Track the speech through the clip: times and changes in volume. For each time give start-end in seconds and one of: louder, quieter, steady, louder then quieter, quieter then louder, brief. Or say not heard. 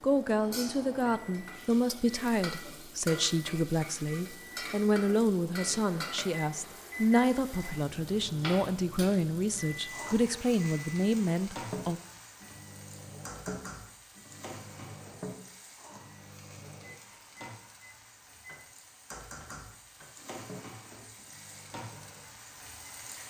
0.0-12.0 steady.